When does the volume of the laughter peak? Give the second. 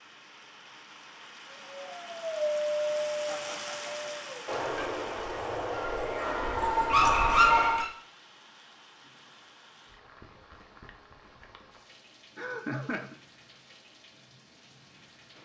13 s.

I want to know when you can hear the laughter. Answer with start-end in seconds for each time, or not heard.
3.2-4.1, 12.3-13.2.